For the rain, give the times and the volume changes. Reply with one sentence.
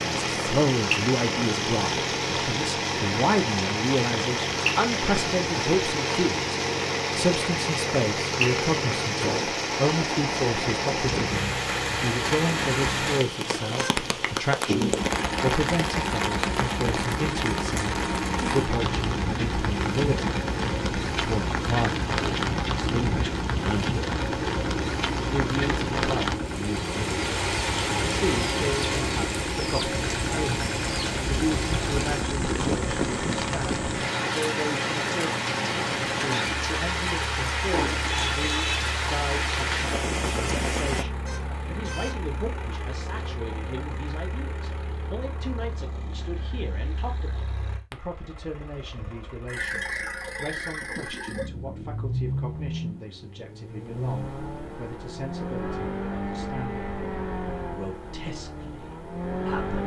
The rain can be heard from 0.0 to 41.0 s, at a steady volume.